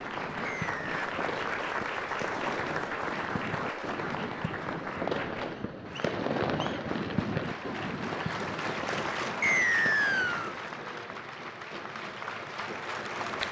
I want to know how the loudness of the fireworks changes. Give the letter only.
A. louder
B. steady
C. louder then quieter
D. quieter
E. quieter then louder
C.